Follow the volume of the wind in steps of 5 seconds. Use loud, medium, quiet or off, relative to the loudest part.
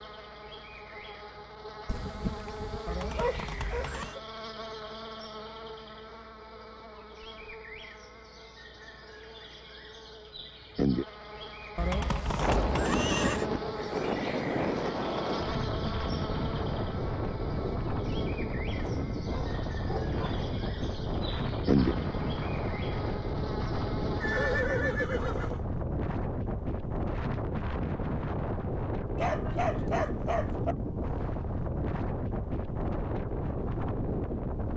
off, off, loud, loud, loud, loud, loud.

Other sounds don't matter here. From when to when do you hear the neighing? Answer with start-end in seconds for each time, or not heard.
2.9-4.2, 11.8-13.4, 24.2-25.6.